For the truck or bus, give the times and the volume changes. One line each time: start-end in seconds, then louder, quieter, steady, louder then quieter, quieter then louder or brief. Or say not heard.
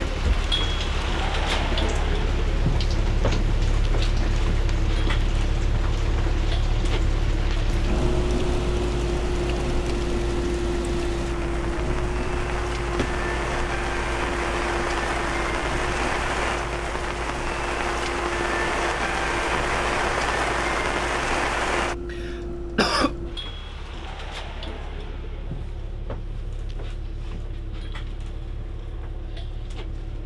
0.0-30.2 quieter.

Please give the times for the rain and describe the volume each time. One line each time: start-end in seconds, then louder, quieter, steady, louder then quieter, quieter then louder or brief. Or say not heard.
0.0-21.9 louder.